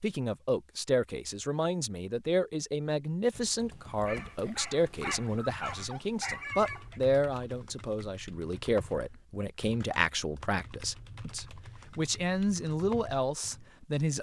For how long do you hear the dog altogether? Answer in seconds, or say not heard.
3 s.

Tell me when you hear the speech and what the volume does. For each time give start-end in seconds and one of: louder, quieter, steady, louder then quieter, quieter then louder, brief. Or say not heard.
0.0-14.1 steady.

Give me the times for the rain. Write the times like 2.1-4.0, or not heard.
not heard.